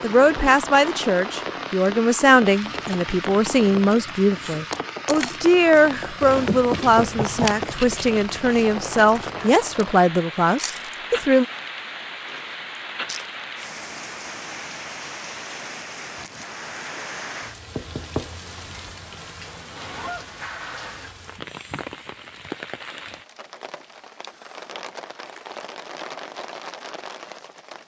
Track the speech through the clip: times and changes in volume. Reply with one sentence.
You can hear the speech from 0.0 to 11.4 s, at a steady volume.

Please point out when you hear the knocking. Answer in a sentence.
The knocking can be heard from 6.2 to 7.7 s and from 17.8 to 18.9 s.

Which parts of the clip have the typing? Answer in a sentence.
You can't hear the typing here.